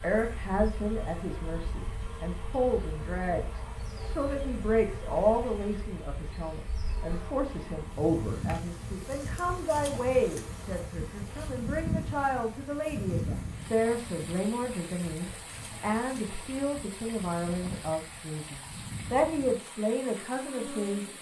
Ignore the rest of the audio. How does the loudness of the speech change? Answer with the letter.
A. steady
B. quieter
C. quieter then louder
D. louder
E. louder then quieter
A.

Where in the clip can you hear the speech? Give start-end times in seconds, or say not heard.
0.0-21.1.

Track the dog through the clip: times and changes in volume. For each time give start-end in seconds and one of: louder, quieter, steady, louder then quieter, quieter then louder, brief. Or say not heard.
not heard.